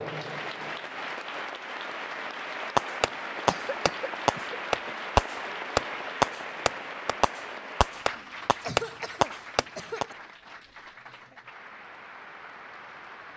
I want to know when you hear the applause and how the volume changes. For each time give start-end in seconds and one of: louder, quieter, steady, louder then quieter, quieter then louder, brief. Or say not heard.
0.0-13.3 quieter.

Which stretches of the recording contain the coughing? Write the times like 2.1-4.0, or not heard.
3.5-5.0, 8.2-10.2.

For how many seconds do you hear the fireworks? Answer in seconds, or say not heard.
7 s.